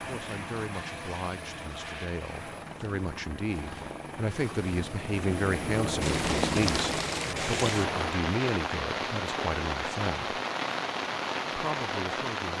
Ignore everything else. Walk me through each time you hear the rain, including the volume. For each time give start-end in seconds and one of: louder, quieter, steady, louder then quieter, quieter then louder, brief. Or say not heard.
6.0-12.5 steady.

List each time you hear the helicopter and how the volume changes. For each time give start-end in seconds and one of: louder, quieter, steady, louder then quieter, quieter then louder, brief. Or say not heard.
0.0-8.2 louder.